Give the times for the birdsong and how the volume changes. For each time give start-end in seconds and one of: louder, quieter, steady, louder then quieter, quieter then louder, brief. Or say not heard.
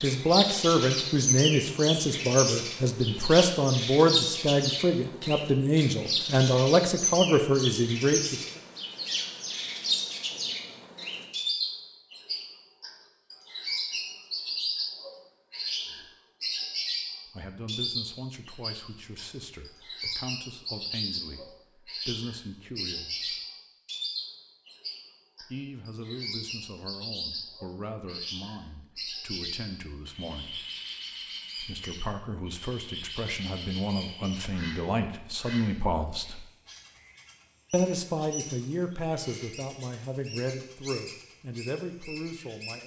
0.0-42.8 quieter.